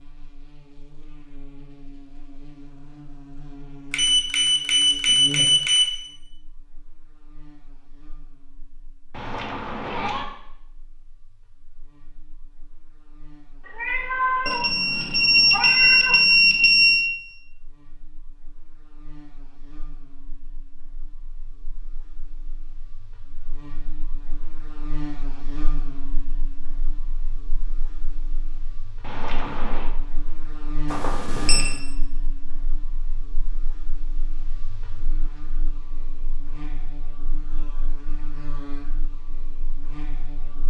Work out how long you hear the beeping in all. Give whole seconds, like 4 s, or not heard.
5 s.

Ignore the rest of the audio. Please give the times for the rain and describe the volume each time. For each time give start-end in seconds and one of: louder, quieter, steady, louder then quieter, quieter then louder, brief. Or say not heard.
not heard.